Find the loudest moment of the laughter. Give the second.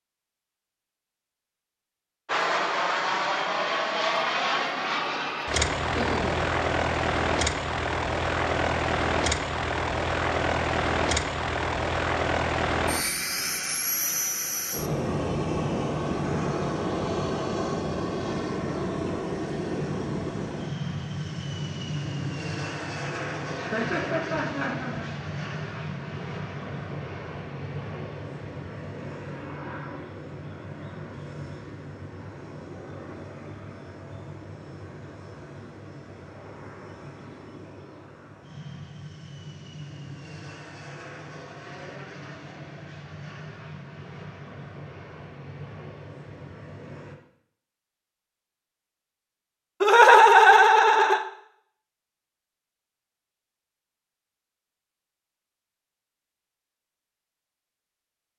50 s.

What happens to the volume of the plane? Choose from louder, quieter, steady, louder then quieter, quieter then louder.
quieter.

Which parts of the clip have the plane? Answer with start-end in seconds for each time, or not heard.
2.2-47.1.